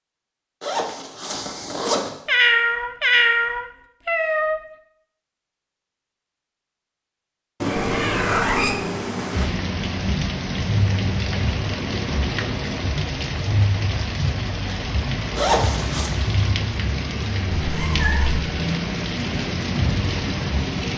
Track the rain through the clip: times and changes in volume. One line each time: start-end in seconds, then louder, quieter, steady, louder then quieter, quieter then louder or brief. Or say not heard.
9.2-20.9 steady.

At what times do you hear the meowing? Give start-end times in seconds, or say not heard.
2.2-4.6, 7.6-9.5, 17.6-18.4.